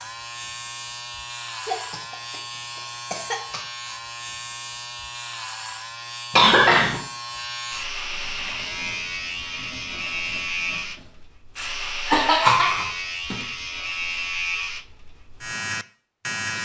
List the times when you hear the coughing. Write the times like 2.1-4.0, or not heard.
1.6-3.6, 6.3-7.0, 11.6-13.4.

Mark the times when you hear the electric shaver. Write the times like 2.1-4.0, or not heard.
0.0-16.5.